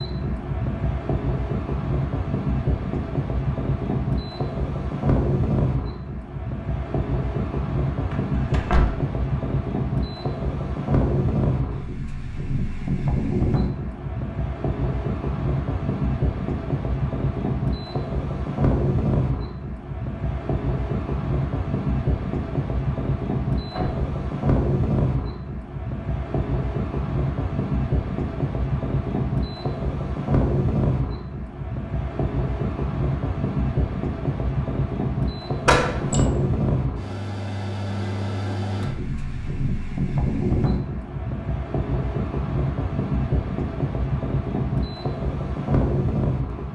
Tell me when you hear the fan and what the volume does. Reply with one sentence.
You can hear the fan from 0.0 to 46.7 s, at a steady volume.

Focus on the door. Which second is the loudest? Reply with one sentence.
The loudest moment of the door is at 36 seconds.